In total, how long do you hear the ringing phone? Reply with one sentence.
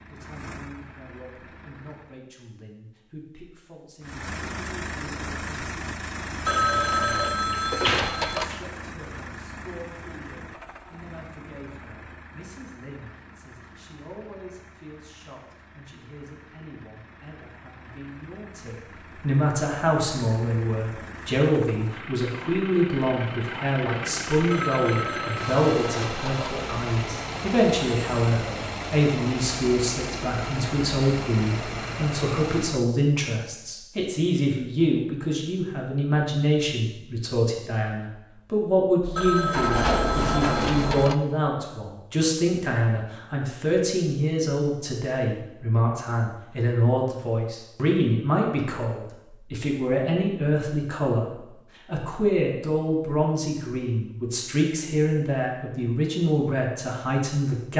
The ringing phone can be heard for 6 seconds in total.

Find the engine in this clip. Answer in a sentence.
The engine can be heard from 0.0 to 2.2 s and from 4.0 to 32.9 s.